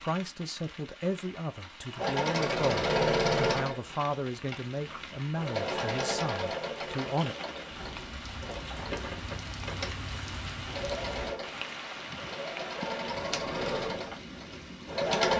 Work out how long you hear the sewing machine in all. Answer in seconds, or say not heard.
13 s.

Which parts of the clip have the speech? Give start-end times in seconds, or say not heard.
0.0-7.3.